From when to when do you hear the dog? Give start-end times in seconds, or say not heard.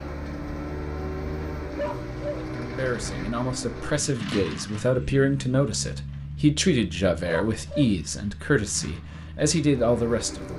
1.8-2.5, 7.2-8.0.